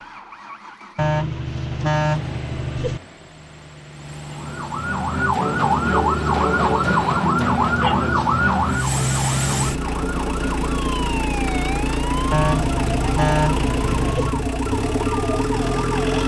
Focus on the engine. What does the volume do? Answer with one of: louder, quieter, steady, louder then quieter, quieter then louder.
louder.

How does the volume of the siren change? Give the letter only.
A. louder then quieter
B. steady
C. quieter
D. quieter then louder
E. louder
C.